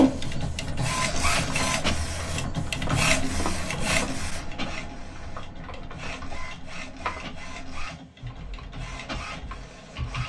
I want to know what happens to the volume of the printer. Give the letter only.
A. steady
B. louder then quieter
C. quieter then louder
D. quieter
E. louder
D.